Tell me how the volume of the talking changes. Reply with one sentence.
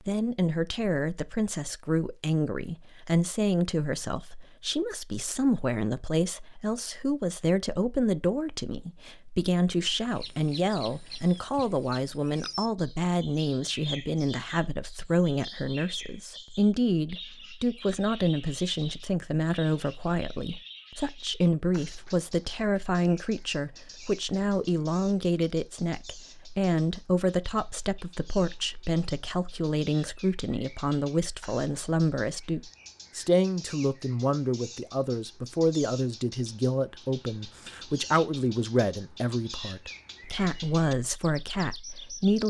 The volume of the talking stays about the same.